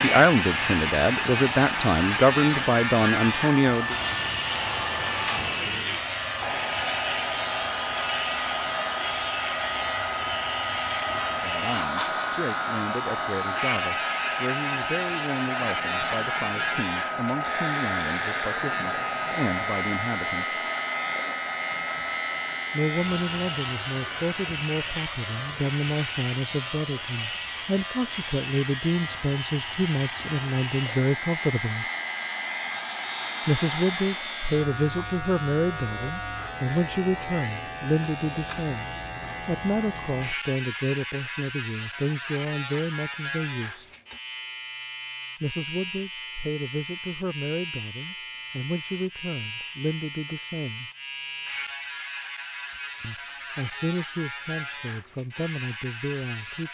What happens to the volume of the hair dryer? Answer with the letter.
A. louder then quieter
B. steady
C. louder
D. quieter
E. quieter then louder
D.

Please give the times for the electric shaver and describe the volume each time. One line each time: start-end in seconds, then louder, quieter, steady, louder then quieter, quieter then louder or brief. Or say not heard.
0.0-56.6 quieter.